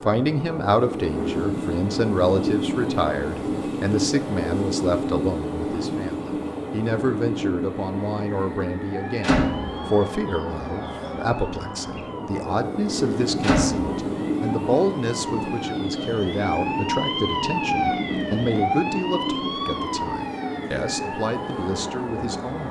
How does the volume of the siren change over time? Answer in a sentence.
The loudness of the siren goes up, then down.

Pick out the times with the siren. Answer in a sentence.
The siren can be heard from 8.8 to 22.6 s.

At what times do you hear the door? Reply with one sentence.
You can hear the door from 9.2 to 9.8 s and from 13.4 to 13.9 s.